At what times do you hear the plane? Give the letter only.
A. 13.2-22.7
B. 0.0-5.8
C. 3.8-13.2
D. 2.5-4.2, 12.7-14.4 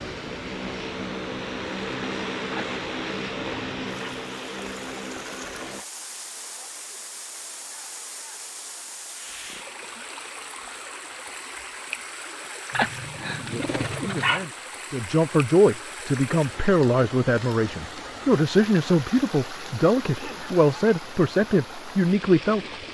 B.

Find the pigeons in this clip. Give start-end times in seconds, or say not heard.
2.5-4.2, 12.7-14.4.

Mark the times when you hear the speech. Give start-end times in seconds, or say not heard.
13.2-22.7.